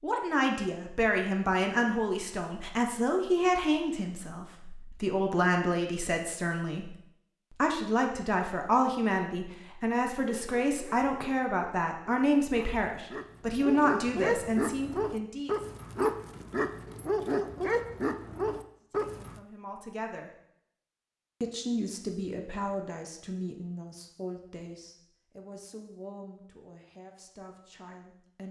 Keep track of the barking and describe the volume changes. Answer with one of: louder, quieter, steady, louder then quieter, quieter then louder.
louder.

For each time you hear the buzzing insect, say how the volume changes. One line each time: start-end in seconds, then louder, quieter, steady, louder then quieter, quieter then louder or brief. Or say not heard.
not heard.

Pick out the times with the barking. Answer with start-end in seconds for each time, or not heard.
9.9-19.4.